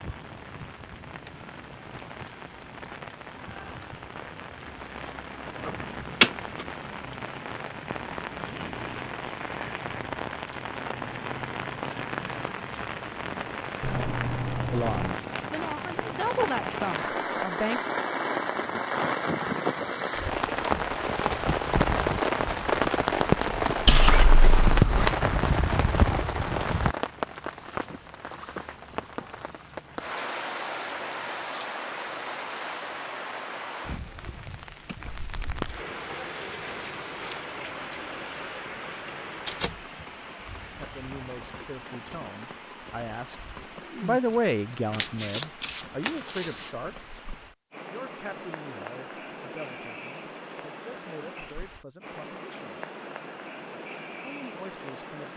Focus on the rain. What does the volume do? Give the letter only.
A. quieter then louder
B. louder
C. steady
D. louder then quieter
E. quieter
D.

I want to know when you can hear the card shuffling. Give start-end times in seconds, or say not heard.
5.7-6.7, 23.9-25.1, 44.9-46.5.